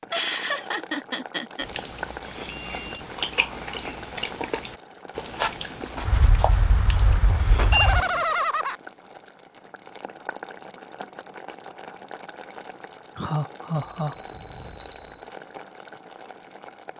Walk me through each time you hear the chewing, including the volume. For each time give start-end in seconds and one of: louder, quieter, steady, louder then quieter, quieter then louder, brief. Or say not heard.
1.6-8.2 louder then quieter.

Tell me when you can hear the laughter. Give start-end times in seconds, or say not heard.
0.1-1.6, 7.5-8.8, 13.2-14.8.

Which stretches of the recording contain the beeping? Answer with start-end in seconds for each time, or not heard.
2.0-3.0, 6.0-8.0, 13.8-15.3.